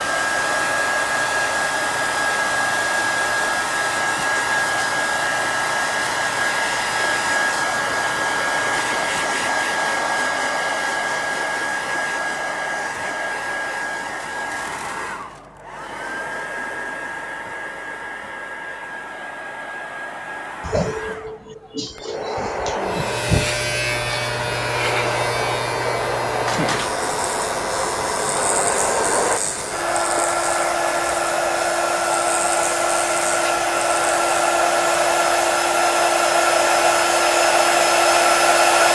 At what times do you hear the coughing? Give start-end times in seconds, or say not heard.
20.6-23.1.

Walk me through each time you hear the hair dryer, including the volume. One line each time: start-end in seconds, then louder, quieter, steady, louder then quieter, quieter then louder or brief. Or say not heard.
0.0-38.9 quieter then louder.